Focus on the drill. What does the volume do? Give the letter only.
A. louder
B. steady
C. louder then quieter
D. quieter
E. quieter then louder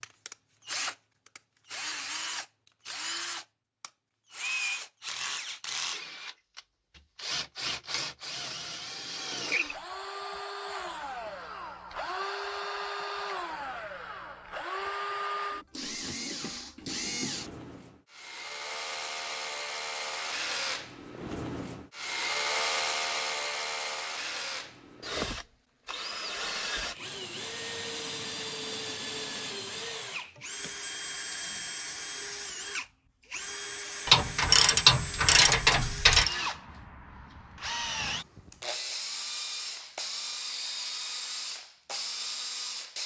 B.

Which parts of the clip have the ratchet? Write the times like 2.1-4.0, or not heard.
34.0-36.4.